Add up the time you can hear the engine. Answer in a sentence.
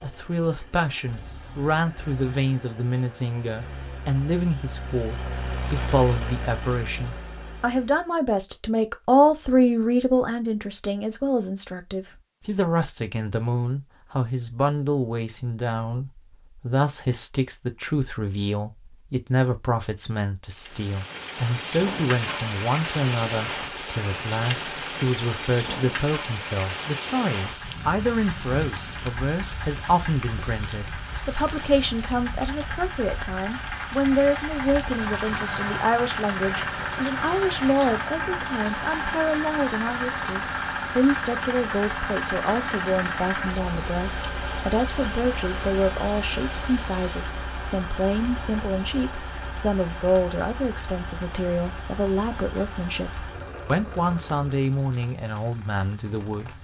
The engine can be heard for 35 seconds in total.